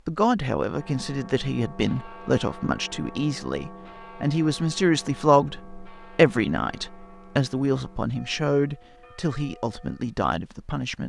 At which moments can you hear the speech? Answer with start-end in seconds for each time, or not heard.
0.1-11.0.